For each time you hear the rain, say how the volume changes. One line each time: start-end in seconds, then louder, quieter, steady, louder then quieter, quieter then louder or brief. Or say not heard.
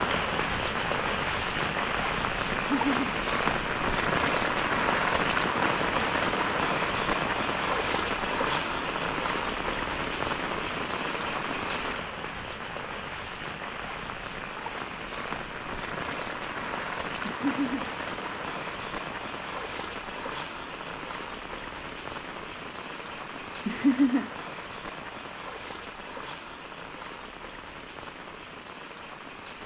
0.0-29.6 quieter.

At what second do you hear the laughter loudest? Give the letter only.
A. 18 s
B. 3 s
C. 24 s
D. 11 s
C.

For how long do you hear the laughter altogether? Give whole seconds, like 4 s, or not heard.
2 s.